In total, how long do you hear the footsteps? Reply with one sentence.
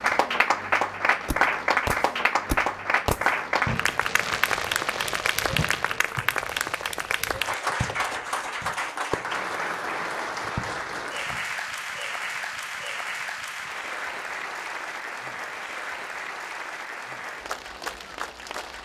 You can't hear the footsteps here.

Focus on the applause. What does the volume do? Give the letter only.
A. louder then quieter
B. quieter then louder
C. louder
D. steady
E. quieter
E.